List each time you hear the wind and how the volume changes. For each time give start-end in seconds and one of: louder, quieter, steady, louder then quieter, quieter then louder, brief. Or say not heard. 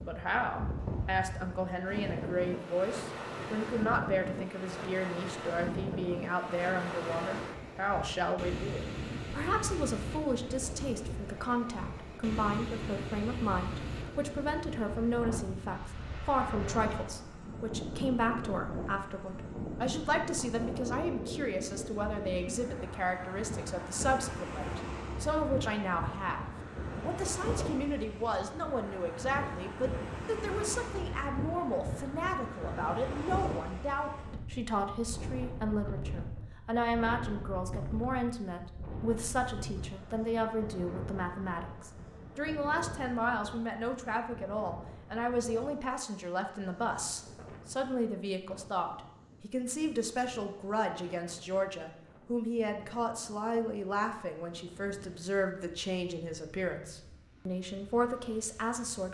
0.0-59.1 quieter.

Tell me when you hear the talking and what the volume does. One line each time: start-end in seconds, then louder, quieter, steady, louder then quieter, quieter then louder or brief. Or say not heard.
0.0-26.4 steady
27.1-59.1 steady.